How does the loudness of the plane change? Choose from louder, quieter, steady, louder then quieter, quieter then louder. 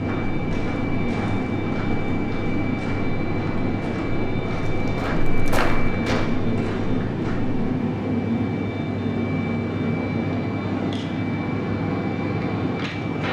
steady.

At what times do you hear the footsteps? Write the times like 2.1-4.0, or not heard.
0.0-7.5.